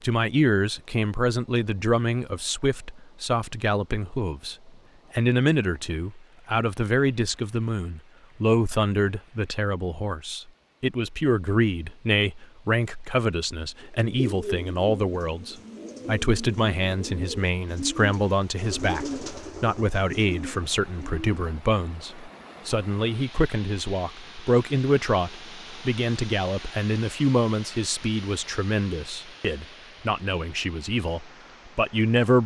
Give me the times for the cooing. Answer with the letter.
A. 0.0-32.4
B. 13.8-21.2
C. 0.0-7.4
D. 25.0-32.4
B.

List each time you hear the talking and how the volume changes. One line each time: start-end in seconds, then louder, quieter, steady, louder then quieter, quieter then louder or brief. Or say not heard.
0.0-32.4 steady.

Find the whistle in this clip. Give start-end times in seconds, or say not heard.
not heard.